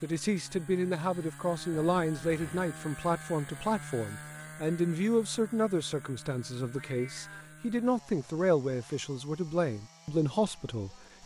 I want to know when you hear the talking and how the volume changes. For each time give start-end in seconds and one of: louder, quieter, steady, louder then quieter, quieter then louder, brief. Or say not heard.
0.0-11.2 steady.